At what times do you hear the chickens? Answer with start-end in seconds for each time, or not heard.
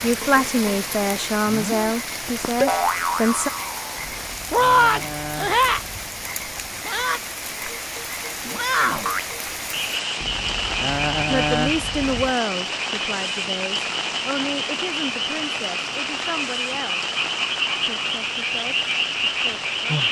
4.0-6.7, 10.2-12.3.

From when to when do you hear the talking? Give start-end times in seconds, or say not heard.
0.0-3.5, 11.2-17.1, 17.9-20.0.